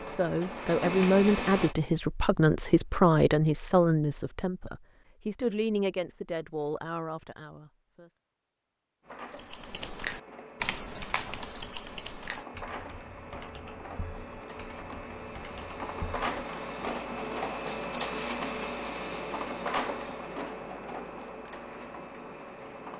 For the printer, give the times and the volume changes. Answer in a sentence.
You can hear the printer briefly from 0.0 to 1.8 s; and from 9.0 to 22.9 s, getting louder then quieter.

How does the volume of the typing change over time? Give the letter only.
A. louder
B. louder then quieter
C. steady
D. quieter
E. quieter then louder
D.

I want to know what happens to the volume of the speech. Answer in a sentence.
The loudness of the speech goes down.